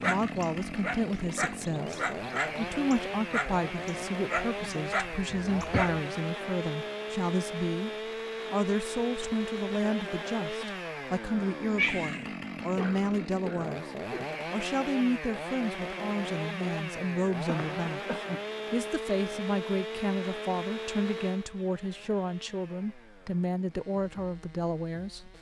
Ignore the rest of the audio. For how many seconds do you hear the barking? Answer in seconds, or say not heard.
6 s.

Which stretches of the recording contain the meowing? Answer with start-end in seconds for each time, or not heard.
11.8-12.3.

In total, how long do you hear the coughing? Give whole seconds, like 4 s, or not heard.
3 s.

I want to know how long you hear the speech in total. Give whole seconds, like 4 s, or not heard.
25 s.